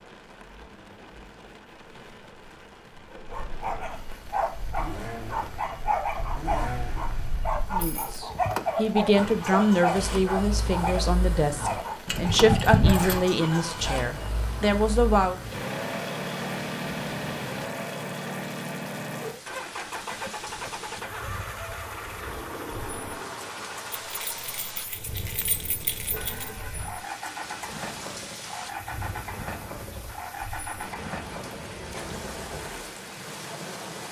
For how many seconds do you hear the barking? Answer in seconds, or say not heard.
11 s.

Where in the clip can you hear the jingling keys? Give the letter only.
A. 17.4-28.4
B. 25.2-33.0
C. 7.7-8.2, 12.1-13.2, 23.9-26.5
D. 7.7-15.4
C.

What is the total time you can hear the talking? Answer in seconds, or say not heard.
8 s.